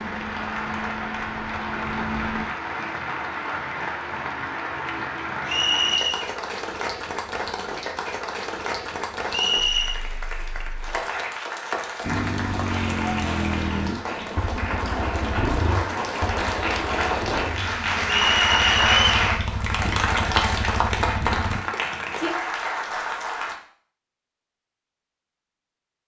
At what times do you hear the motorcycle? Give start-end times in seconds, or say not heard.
0.0-2.5, 12.0-21.6.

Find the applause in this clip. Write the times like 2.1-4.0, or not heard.
0.0-23.6.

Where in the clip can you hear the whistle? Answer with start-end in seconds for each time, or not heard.
5.5-6.2, 9.3-10.0, 18.1-19.1.